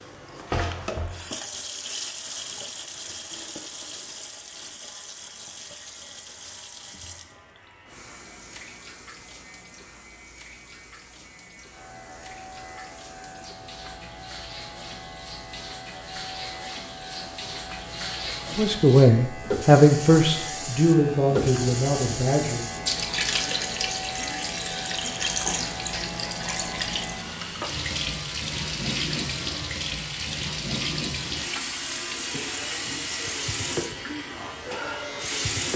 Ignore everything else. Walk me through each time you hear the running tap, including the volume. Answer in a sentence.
You can hear the running tap from 0.0 to 35.7 s, getting quieter then louder.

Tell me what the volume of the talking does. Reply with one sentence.
The loudness of the talking goes down.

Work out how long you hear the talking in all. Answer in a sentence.
The talking can be heard for 4 seconds in total.